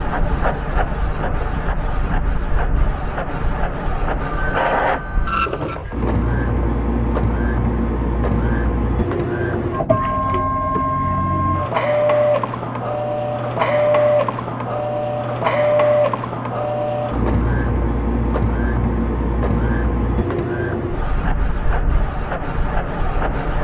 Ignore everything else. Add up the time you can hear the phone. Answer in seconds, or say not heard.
2 s.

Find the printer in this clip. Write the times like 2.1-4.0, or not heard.
0.0-23.5.